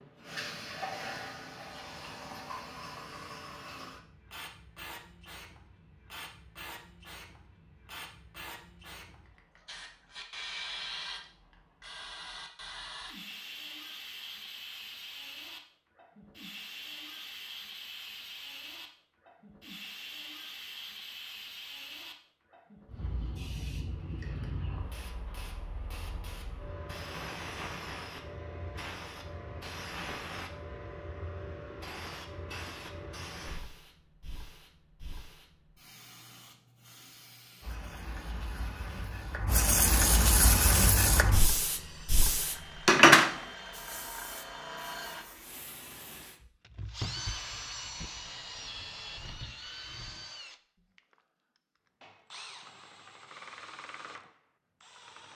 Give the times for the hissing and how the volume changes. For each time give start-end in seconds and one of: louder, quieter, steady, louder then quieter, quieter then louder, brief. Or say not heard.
0.0-46.4 louder.